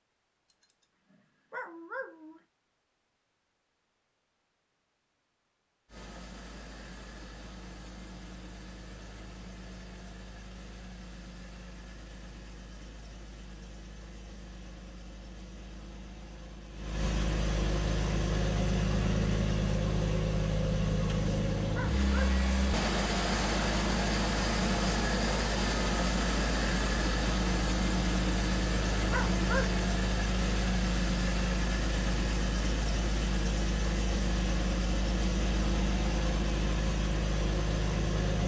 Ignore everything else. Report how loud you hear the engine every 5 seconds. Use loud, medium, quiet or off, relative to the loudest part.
off, quiet, quiet, loud, loud, loud, loud, loud.